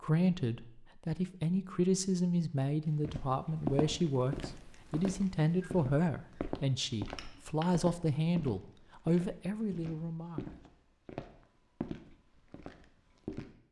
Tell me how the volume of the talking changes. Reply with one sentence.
The volume of the talking stays about the same.